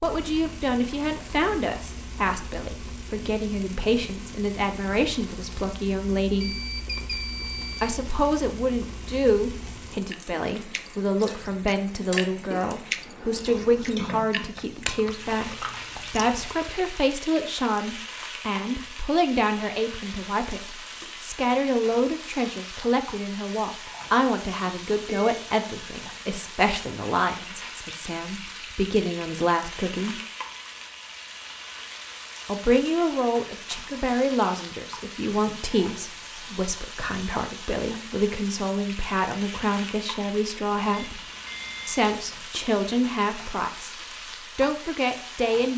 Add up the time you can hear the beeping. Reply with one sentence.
The beeping can be heard for 4 seconds in total.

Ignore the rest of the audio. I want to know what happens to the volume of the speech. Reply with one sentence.
The loudness of the speech stays about the same.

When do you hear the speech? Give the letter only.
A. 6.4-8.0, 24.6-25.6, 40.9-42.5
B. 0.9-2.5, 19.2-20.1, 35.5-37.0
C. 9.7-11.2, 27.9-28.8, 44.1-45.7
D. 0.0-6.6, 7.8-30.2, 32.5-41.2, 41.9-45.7
D.